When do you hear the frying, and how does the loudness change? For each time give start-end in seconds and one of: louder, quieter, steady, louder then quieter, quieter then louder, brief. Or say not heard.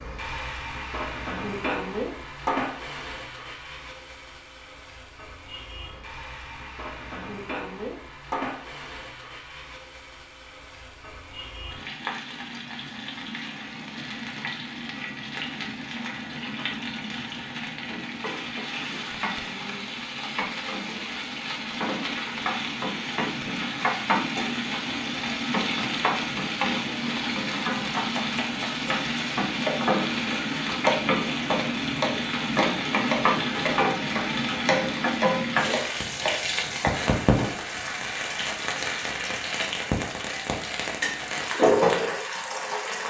0.0-43.0 louder.